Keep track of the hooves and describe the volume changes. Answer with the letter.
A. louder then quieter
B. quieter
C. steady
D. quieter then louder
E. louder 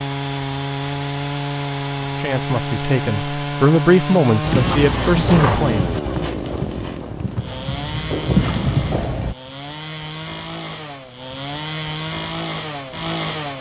D.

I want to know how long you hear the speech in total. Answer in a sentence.
The speech can be heard for 4 seconds in total.